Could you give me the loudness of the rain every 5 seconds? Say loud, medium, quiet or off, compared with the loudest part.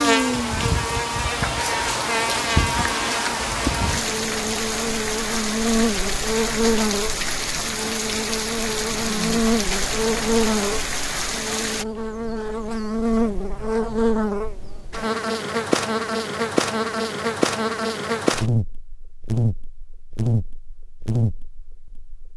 loud, loud, loud, off, off.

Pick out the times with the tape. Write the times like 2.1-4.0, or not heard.
not heard.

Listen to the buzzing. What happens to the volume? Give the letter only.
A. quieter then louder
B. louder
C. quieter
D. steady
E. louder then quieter
D.